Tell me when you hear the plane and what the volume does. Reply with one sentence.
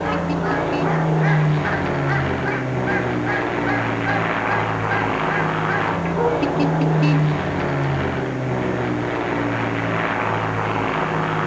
You can hear the plane from 0.0 to 11.4 s, at a steady volume.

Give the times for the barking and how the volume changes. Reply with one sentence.
You can hear the barking from 0.0 to 6.3 s, at a steady volume.